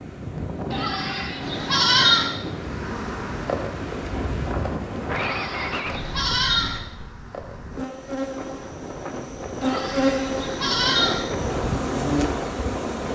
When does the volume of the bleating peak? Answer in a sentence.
The volume of the bleating peaks at 2 seconds.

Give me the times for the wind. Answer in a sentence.
The wind can be heard from 0.0 to 13.0 s.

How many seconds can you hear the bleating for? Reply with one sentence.
You can hear the bleating for 5 seconds altogether.